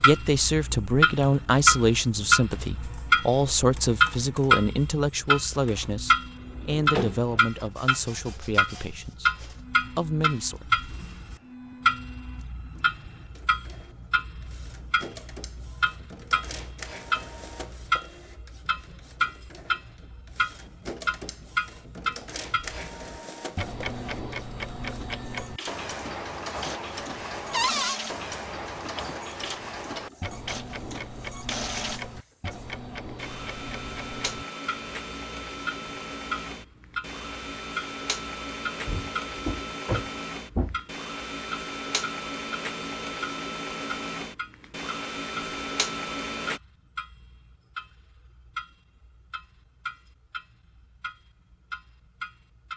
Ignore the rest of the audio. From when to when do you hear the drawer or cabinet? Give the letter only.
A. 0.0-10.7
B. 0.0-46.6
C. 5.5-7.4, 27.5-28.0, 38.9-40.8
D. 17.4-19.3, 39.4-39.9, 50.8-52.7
C.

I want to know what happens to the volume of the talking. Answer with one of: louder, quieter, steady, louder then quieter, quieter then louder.
quieter.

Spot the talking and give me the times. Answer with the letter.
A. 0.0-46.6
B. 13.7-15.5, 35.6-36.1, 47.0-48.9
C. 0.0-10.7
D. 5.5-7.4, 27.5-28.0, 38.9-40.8
C.